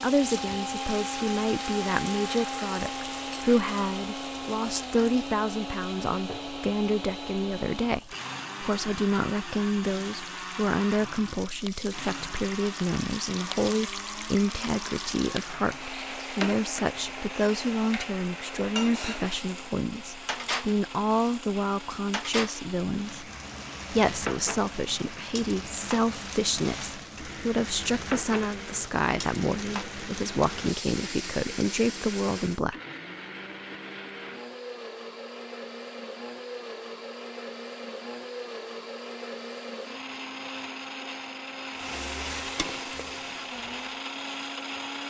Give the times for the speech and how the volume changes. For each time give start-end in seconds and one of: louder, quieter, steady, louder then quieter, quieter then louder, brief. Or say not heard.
0.0-23.3 steady
23.9-32.8 steady.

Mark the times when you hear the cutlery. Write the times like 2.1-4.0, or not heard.
not heard.